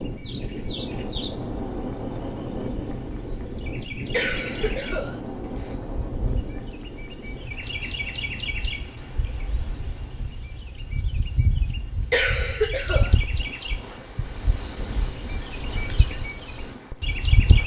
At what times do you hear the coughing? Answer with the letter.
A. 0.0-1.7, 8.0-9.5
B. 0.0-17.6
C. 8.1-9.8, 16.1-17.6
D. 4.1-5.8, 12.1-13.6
D.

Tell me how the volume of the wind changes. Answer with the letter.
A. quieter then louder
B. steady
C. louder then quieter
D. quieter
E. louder
D.